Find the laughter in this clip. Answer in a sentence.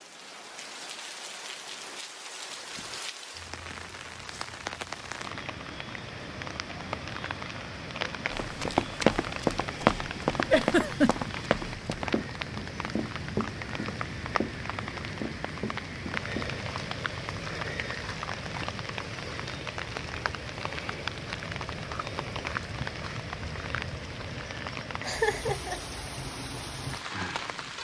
The laughter can be heard from 10.5 to 11.3 s and from 25.0 to 25.8 s.